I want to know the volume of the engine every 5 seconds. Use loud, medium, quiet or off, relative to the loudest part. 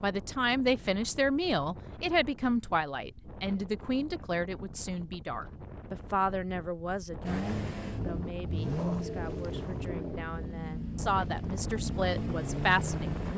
off, loud, loud.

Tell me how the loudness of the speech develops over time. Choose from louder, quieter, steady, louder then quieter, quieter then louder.
quieter then louder.